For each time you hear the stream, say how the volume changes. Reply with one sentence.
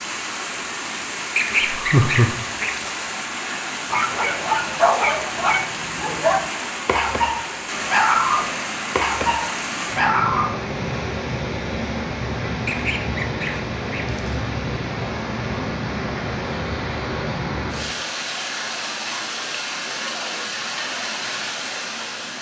The stream can be heard from 0.0 to 22.3 s, at a steady volume.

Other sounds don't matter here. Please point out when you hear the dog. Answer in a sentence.
You can hear the dog from 3.9 to 10.6 s.